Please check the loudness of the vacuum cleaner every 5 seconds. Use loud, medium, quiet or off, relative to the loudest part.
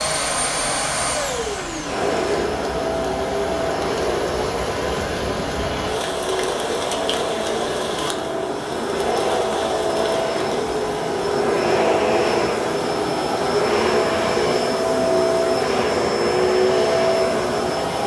medium, medium, loud, loud.